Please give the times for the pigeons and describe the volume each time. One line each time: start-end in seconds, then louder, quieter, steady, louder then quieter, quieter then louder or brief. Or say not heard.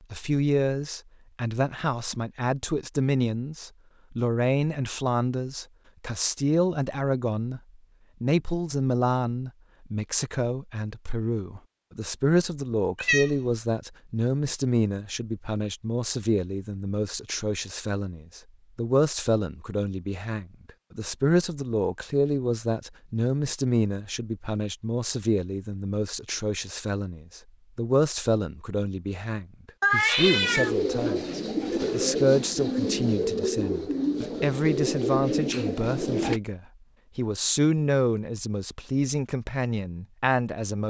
30.1-36.4 steady.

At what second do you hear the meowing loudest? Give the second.
30 s.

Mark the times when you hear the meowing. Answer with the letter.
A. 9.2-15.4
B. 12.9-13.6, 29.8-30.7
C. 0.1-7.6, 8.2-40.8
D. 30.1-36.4
B.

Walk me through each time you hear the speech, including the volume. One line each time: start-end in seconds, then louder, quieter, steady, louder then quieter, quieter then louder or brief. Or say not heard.
0.1-7.6 steady
8.2-40.8 steady.